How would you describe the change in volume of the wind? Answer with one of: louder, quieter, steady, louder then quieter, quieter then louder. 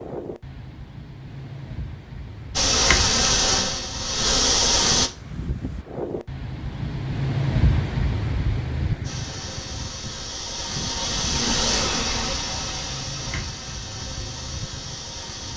louder then quieter.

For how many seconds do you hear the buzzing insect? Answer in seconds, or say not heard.
9 s.